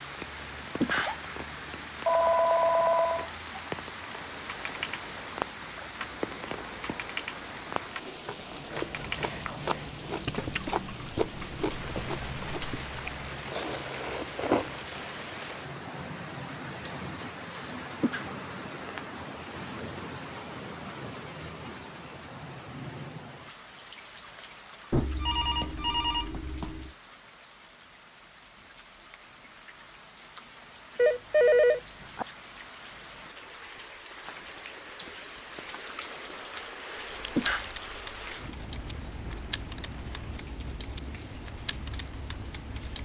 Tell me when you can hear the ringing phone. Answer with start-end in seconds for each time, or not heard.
2.0-3.2, 24.9-26.9, 30.9-32.2.